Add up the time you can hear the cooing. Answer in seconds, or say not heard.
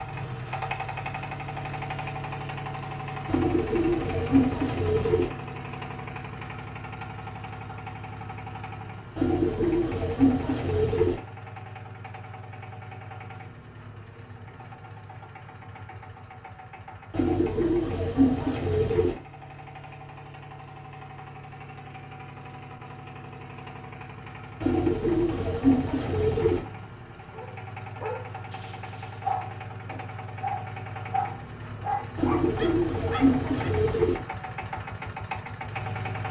10 s.